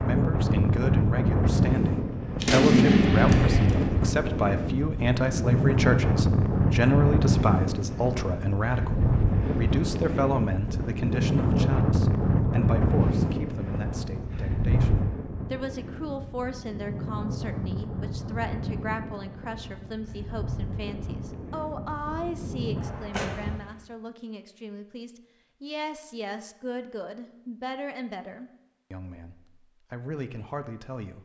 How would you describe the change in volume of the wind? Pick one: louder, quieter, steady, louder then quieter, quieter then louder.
quieter.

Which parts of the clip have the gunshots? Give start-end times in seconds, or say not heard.
2.4-3.9, 23.1-23.9.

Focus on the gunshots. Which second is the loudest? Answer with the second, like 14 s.
3 s.